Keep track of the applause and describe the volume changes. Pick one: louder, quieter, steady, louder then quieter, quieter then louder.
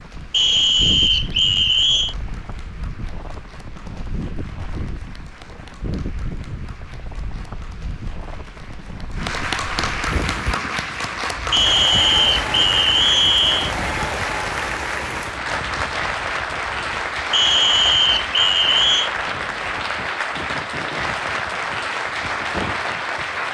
louder.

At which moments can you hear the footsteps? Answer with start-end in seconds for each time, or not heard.
not heard.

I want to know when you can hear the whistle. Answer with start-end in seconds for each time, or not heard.
0.3-2.1, 11.5-13.8, 17.3-19.1.